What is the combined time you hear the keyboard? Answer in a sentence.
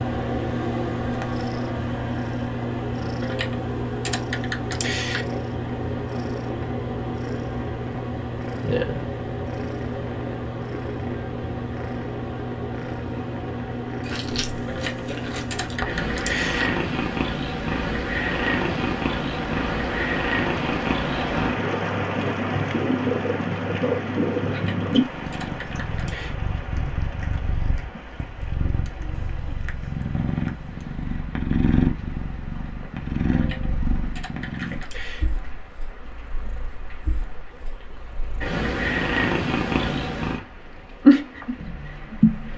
You can hear the keyboard for 8 seconds altogether.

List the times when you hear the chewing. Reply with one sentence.
You can hear the chewing from 14.0 to 15.8 s.